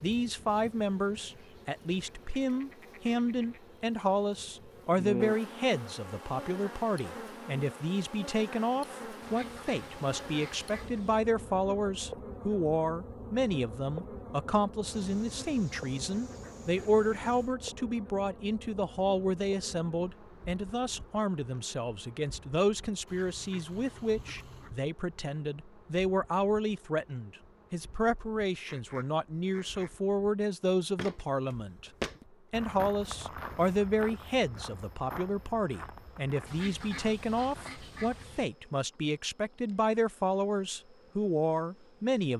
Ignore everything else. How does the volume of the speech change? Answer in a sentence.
The volume of the speech stays about the same.